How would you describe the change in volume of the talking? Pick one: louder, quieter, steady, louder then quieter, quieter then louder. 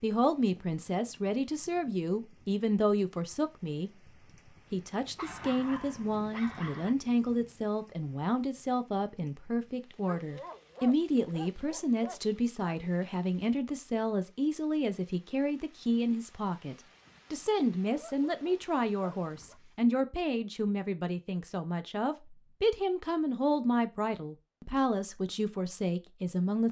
steady.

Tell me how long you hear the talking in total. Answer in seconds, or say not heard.
26 s.